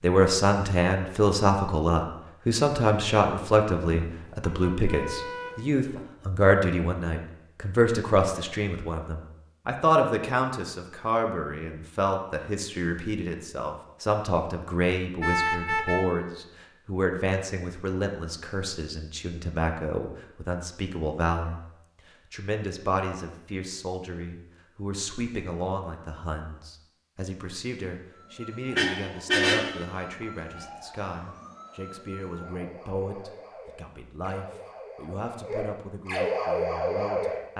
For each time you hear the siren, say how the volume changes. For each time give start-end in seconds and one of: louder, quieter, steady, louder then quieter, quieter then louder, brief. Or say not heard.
28.1-37.4 louder.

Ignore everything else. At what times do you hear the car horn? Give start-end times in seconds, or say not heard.
3.9-6.0, 15.2-16.1, 28.8-29.8.